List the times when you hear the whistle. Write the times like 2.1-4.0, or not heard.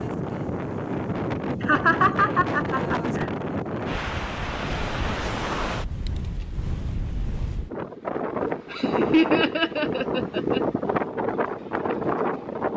not heard.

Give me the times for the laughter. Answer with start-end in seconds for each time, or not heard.
1.6-3.3, 8.7-10.6.